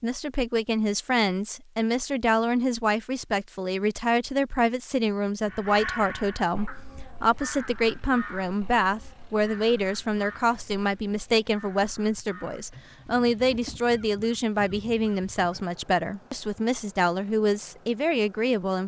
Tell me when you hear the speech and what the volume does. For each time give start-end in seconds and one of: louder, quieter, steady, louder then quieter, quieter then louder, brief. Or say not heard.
0.0-18.8 steady.